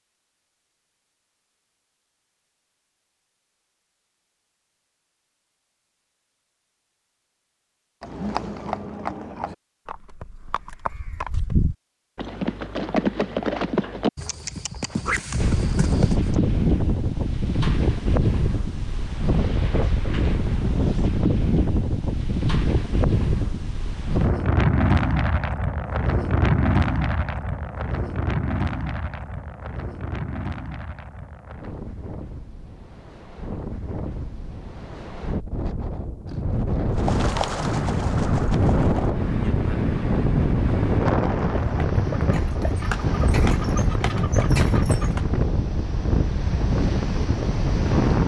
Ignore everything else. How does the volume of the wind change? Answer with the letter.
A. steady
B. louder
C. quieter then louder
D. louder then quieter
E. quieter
C.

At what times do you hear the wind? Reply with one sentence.
The wind can be heard from 15.3 to 48.2 s.